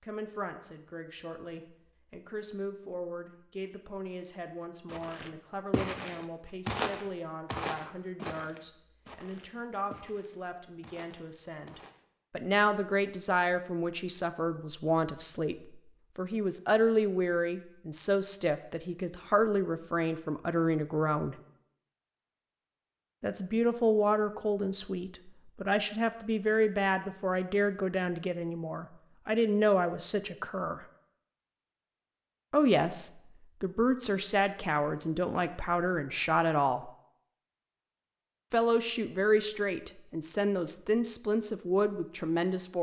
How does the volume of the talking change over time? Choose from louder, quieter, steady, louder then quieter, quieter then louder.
louder.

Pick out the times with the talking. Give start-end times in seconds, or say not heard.
0.0-21.4, 23.2-30.9, 32.5-36.9, 38.5-42.7.